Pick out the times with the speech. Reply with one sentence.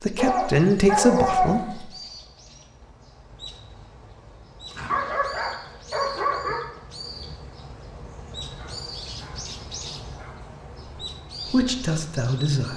The speech can be heard from 0.0 to 1.9 s and from 11.4 to 12.7 s.